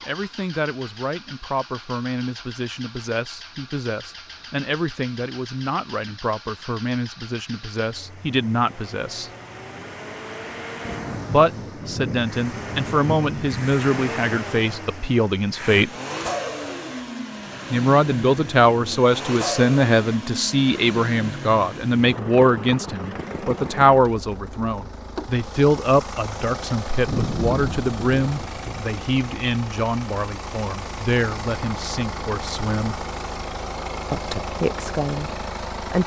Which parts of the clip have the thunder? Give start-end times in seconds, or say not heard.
10.8-13.8, 27.1-28.8.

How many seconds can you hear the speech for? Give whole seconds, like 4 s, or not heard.
31 s.